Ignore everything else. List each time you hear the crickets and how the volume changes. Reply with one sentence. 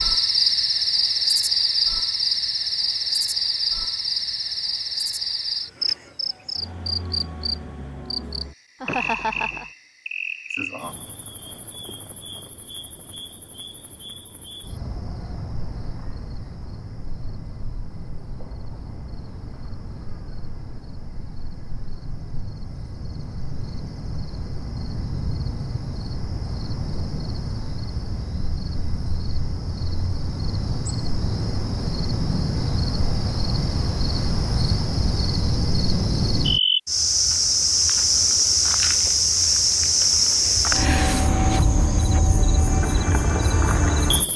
The crickets can be heard from 0.0 to 44.3 s, getting quieter then louder.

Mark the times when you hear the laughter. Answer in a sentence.
The laughter can be heard from 8.8 to 9.7 s.